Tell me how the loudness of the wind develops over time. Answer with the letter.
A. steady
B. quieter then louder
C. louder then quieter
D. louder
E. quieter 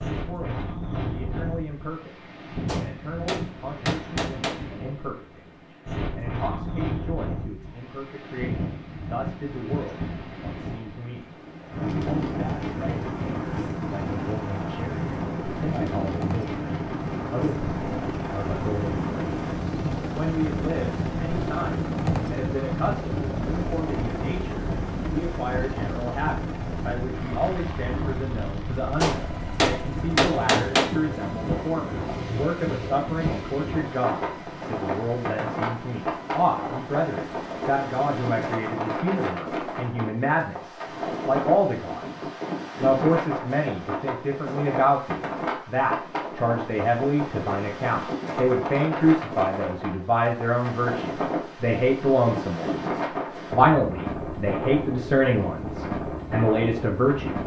A.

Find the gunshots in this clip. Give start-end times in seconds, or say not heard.
2.6-4.6, 29.0-30.9.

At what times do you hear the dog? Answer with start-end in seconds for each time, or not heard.
not heard.